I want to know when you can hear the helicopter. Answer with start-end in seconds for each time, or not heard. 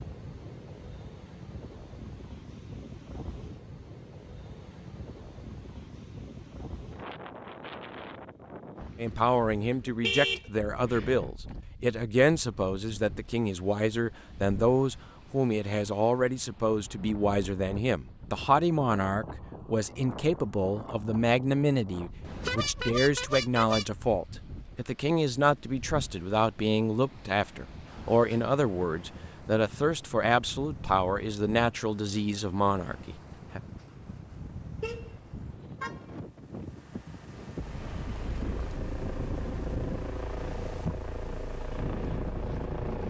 37.5-43.0.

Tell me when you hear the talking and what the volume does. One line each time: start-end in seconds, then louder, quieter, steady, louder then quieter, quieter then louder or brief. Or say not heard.
8.9-33.6 steady.